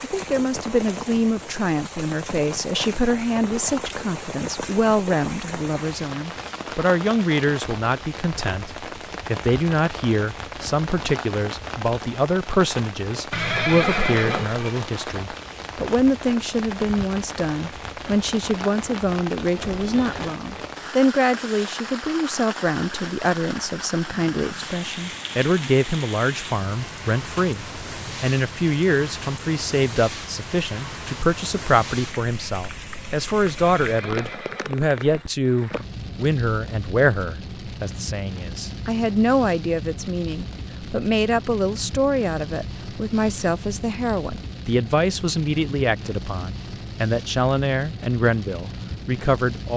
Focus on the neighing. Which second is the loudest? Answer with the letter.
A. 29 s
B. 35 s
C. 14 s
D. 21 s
C.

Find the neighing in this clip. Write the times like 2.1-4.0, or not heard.
13.3-14.8, 19.6-20.4, 33.5-35.2.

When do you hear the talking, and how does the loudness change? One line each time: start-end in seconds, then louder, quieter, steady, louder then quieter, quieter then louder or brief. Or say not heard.
0.0-49.7 steady.